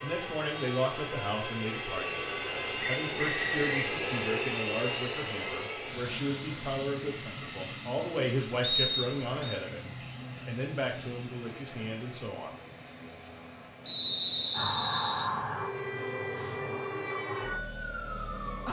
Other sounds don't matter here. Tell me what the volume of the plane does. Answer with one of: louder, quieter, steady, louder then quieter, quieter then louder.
quieter.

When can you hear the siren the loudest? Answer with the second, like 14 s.
15 s.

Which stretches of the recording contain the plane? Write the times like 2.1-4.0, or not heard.
0.0-18.6.